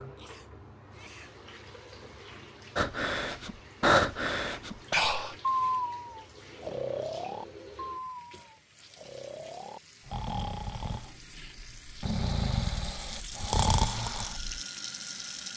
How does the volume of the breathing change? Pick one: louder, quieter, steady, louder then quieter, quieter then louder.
quieter then louder.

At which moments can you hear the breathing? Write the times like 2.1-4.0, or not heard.
2.8-14.6.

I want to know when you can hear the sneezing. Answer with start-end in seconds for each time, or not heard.
0.1-1.4.